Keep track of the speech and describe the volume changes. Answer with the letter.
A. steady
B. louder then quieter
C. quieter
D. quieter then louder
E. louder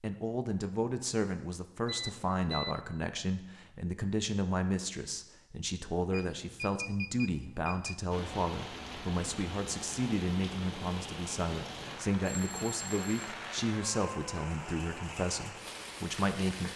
A.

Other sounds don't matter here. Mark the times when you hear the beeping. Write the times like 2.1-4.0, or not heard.
1.9-2.9, 6.1-8.0, 12.2-13.3.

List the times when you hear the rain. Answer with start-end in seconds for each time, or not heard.
8.1-16.7.